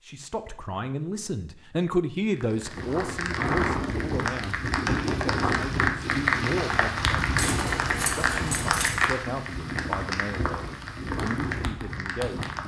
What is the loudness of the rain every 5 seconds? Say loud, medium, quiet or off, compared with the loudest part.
loud, loud, medium.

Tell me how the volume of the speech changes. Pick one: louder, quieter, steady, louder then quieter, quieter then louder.
quieter.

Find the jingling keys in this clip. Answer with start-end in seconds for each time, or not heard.
7.3-8.9.